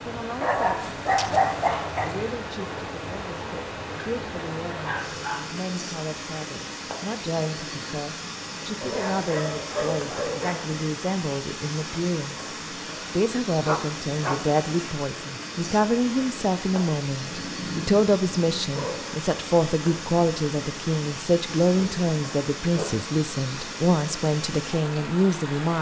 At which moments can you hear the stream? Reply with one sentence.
You can hear the stream from 0.0 to 25.7 s.